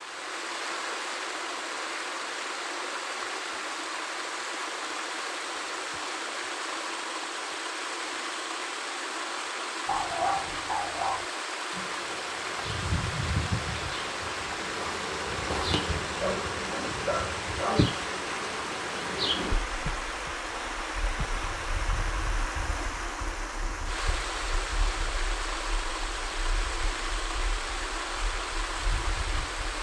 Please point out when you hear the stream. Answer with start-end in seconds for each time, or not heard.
0.0-29.7.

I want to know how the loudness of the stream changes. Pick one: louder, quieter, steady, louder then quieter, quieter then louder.
steady.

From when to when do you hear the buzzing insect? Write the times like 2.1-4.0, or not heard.
11.7-29.7.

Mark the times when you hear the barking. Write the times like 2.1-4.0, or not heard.
9.8-11.2, 16.2-17.9.